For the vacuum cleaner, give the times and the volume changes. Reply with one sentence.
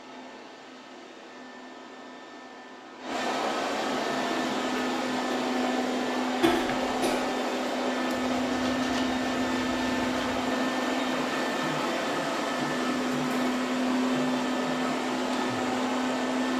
You can hear the vacuum cleaner from 0.0 to 16.5 s, getting louder.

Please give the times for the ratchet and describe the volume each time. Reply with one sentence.
You can't hear the ratchet here.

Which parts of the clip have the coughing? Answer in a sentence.
You can hear the coughing from 6.4 to 7.2 s.